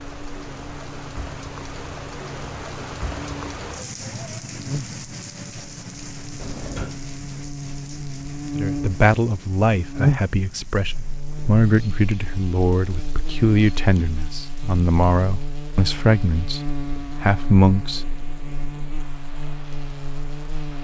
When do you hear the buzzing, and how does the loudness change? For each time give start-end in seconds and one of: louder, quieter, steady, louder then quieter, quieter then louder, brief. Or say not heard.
0.0-20.7 louder then quieter.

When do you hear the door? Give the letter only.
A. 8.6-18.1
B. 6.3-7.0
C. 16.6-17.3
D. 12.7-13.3
B.